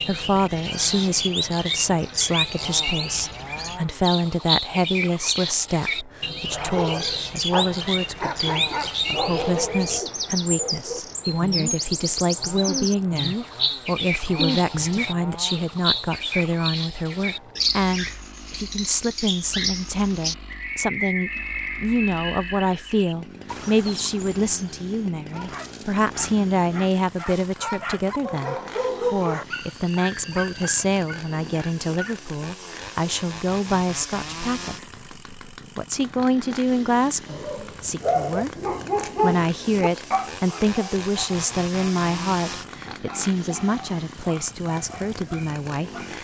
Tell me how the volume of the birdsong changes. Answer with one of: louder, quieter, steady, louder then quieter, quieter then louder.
steady.